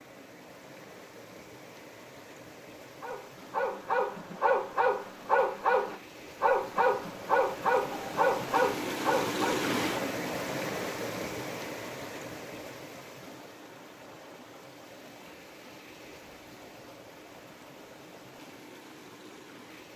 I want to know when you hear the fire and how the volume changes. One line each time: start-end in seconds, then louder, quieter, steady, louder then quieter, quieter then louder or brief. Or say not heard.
not heard.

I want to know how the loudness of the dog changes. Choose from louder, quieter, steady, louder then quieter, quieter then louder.
steady.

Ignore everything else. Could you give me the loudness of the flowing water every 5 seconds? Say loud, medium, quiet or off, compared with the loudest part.
quiet, loud, loud, quiet.